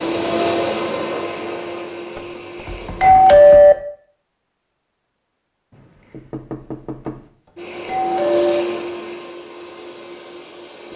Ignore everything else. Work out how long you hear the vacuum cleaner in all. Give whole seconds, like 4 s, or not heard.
7 s.